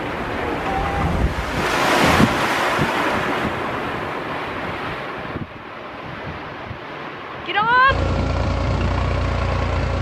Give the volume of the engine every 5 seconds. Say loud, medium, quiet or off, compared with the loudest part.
off, loud.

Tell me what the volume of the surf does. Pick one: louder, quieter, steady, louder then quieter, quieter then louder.
quieter.